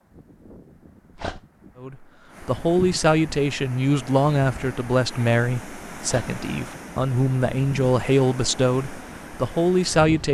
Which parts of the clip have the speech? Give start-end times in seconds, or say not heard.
1.8-10.2.